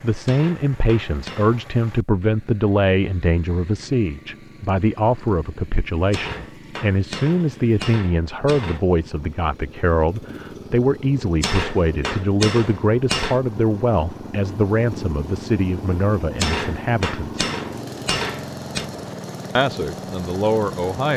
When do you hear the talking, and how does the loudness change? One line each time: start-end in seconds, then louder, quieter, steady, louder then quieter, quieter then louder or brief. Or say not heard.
0.0-17.4 steady
19.6-21.1 brief.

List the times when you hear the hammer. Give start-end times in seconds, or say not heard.
0.2-1.7, 6.1-8.8, 11.4-13.4, 16.4-18.9.